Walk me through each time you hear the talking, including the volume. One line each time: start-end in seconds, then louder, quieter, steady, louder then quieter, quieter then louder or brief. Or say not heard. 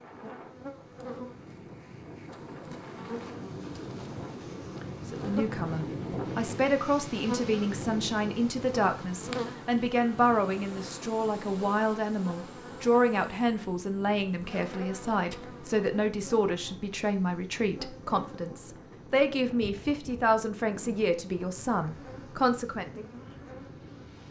5.0-23.1 steady.